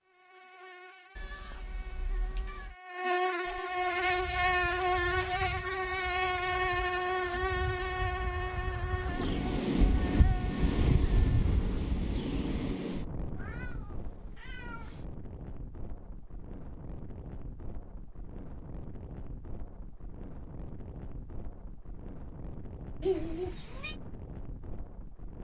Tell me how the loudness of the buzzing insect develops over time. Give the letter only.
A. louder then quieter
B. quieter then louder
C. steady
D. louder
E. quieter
A.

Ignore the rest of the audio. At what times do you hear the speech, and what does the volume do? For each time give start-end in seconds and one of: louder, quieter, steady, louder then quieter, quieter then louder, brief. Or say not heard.
not heard.